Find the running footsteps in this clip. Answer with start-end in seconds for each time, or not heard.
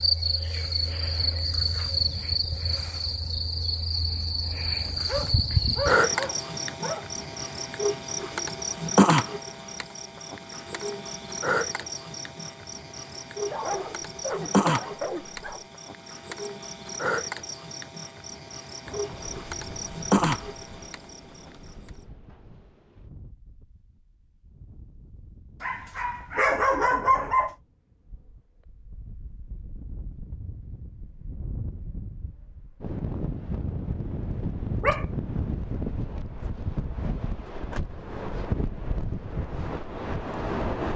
not heard.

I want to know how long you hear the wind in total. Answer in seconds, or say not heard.
22 s.